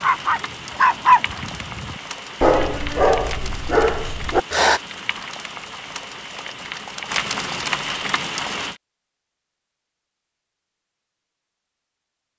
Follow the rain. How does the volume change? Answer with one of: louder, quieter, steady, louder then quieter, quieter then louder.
louder.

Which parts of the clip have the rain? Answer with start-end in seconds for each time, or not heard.
0.0-8.8.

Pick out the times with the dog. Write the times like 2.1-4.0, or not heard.
0.0-4.8.